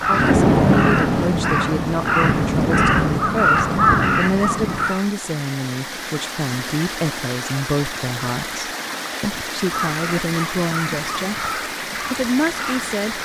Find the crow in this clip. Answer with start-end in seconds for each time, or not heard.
0.0-5.1, 9.6-13.1.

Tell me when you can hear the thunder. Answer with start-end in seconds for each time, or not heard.
0.1-4.9.